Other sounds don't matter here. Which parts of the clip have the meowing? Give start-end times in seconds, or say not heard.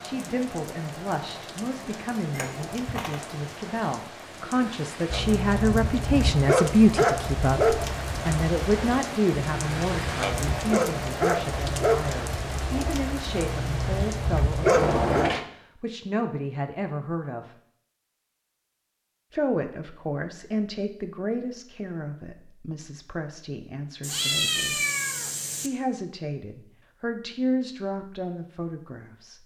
2.4-3.2, 14.7-15.4, 24.0-25.7.